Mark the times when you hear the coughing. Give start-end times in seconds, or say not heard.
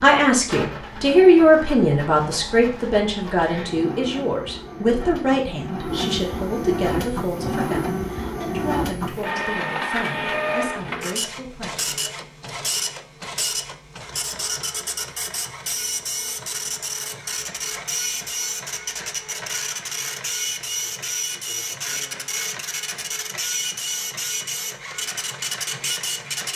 not heard.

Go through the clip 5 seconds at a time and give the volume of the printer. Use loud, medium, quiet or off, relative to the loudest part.
medium, loud, loud, loud, loud, loud.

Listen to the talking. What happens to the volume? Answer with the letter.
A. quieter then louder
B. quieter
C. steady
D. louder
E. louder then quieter
B.